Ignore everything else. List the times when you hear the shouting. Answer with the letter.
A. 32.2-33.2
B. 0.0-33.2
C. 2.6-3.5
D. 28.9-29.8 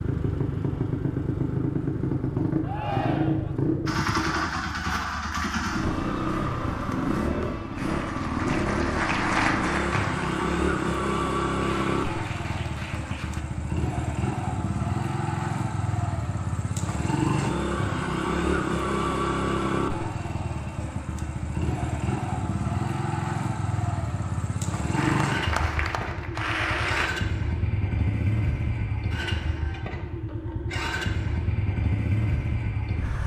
C.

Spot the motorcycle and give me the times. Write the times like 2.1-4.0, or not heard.
0.0-33.2.